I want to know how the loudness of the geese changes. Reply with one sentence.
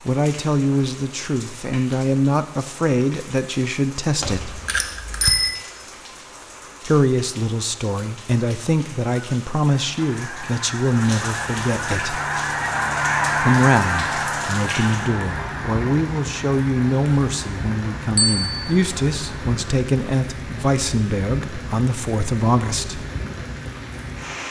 The volume of the geese goes up, then down.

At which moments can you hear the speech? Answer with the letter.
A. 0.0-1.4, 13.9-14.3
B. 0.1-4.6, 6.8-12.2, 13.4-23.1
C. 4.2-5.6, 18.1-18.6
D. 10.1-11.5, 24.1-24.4
B.